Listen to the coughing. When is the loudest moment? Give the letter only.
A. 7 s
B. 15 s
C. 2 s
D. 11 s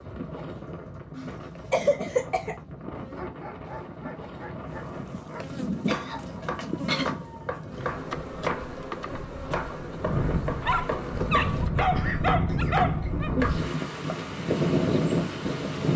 C.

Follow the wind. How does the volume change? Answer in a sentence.
The volume of the wind goes up.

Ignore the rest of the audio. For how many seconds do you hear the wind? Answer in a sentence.
The wind can be heard for 16 seconds in total.